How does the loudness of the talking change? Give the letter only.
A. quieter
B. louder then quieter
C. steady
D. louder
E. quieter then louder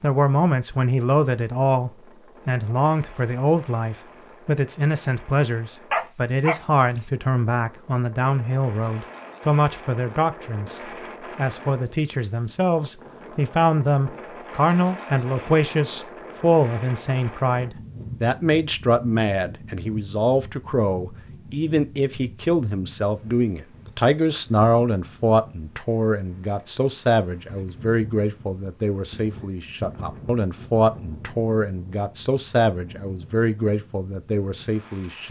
C.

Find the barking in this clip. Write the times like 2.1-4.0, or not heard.
5.9-6.6.